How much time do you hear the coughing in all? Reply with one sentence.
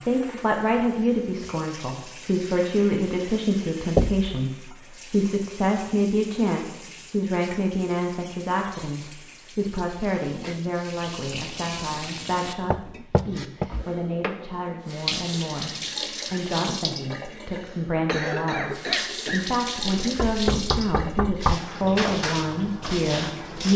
The coughing can be heard for 2 seconds in total.